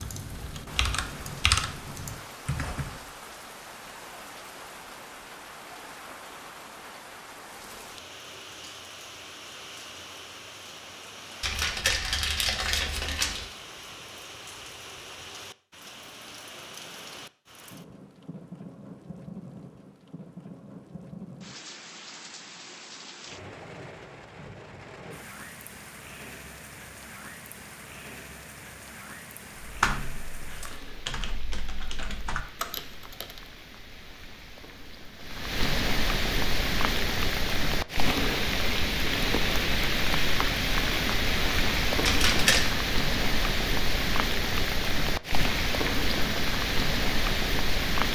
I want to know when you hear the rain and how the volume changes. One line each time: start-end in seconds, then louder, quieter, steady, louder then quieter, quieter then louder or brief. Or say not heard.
0.0-48.0 louder.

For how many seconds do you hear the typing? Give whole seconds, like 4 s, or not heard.
7 s.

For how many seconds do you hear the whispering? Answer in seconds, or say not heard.
not heard.